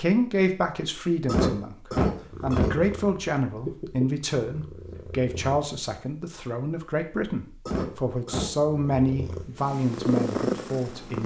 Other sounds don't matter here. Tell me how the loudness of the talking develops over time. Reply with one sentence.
The volume of the talking stays about the same.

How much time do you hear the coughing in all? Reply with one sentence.
The coughing can be heard for 2 seconds in total.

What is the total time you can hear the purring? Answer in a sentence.
You can hear the purring for 6 seconds altogether.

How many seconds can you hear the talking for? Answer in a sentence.
The talking can be heard for 11 seconds in total.